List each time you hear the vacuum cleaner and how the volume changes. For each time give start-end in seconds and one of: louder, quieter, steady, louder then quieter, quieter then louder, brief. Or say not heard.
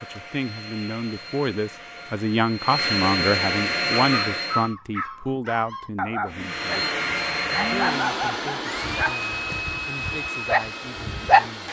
0.0-4.7 louder
6.2-11.6 quieter.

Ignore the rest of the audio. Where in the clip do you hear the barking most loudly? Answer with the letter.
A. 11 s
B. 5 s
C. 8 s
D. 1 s
A.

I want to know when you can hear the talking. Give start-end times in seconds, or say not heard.
0.0-6.9, 7.7-11.6.